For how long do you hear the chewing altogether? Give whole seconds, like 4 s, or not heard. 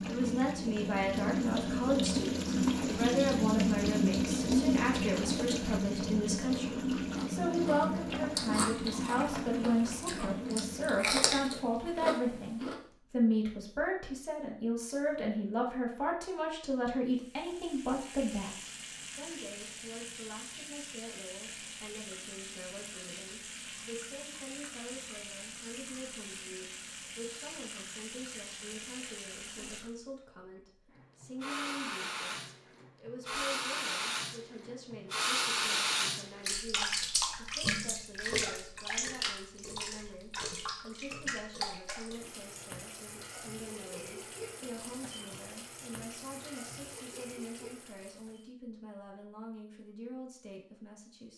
6 s.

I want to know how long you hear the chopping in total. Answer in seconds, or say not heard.
not heard.